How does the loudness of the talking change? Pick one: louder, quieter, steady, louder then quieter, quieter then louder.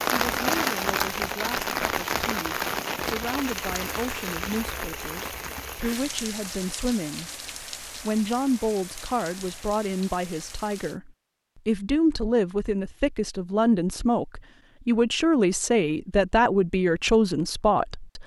louder.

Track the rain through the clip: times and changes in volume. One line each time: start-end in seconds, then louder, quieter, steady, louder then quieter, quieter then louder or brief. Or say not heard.
0.0-11.0 quieter.